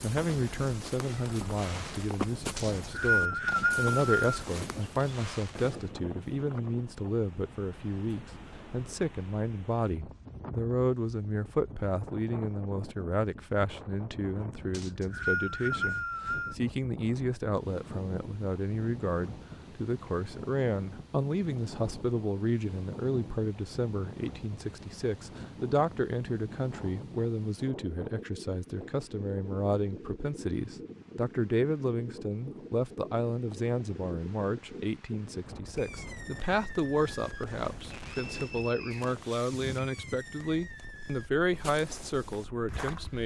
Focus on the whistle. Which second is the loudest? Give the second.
3 s.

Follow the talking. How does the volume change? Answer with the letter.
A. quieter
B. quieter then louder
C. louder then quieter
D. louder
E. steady
E.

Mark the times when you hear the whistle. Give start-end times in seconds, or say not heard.
2.5-4.5, 14.7-16.6, 38.0-39.1.